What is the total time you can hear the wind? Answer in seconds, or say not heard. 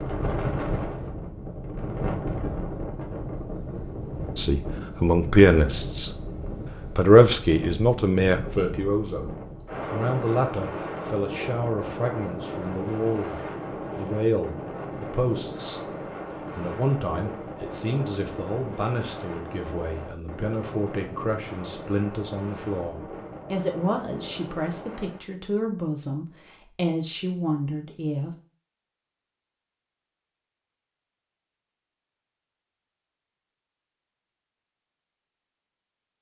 25 s.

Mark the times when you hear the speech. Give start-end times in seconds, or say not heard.
4.3-6.2, 6.9-28.4.